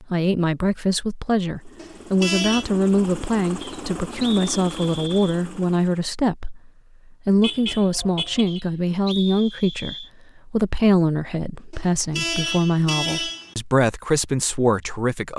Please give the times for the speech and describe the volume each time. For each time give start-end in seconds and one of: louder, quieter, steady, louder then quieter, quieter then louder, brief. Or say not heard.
0.0-15.3 steady.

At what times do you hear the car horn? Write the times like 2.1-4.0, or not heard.
1.8-2.6, 7.4-8.6, 11.7-13.6.